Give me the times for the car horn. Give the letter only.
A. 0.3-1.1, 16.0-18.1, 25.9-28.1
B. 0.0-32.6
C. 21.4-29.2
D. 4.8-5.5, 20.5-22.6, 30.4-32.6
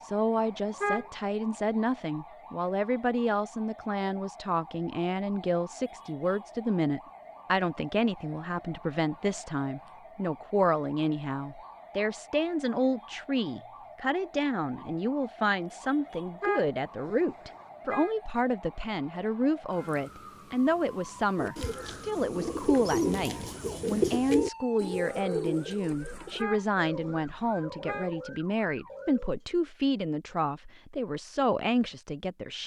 A.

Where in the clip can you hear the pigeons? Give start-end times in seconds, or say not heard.
21.4-29.2.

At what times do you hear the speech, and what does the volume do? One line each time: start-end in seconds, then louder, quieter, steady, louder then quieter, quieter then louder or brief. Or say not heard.
0.0-32.6 steady.